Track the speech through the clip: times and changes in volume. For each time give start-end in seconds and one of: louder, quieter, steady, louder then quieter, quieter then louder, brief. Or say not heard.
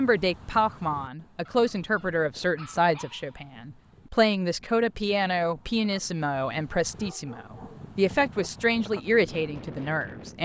0.0-10.4 steady.